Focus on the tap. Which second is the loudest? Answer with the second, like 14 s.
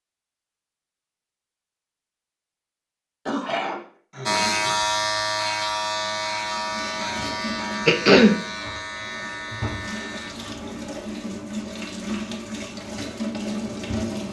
14 s.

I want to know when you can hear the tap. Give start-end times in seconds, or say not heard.
6.5-14.2.